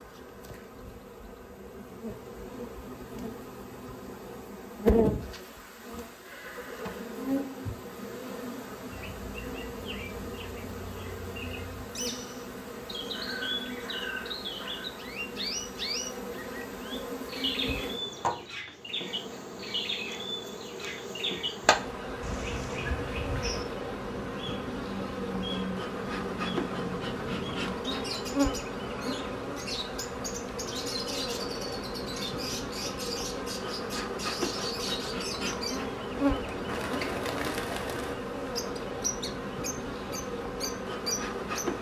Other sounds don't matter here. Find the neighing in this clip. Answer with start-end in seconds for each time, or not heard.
6.2-7.5.